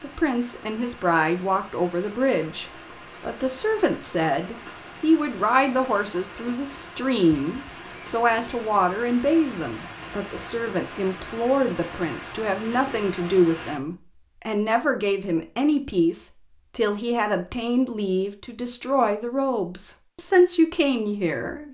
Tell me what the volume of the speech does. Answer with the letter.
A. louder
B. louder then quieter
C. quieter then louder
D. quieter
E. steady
E.